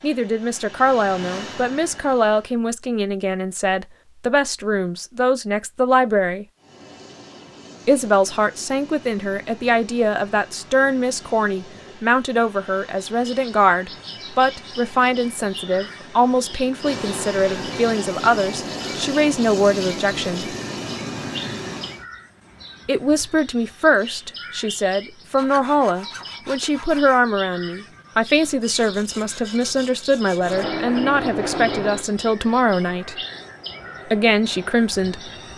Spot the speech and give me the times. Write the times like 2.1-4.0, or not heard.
0.0-6.5, 7.8-20.6, 22.9-33.1, 34.1-35.2.